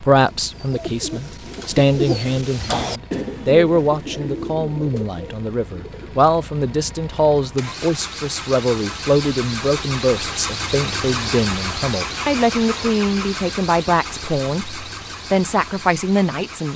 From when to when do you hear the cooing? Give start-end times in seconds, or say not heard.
0.1-6.2.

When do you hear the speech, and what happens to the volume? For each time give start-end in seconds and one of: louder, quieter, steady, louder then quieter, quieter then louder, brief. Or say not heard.
0.0-16.7 steady.